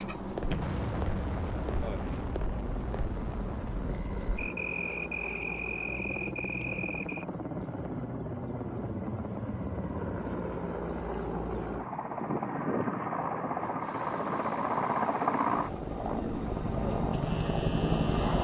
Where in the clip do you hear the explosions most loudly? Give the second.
1 s.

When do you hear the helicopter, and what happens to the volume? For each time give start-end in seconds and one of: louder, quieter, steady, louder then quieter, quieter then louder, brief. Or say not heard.
0.0-18.3 louder.